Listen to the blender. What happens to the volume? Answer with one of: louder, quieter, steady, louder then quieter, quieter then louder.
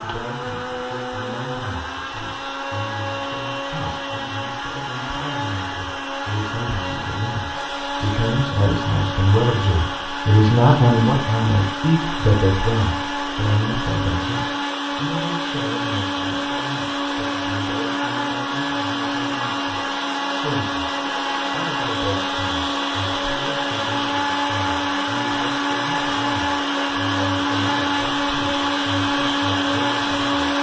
louder.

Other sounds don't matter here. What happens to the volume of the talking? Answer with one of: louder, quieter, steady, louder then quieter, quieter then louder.
louder then quieter.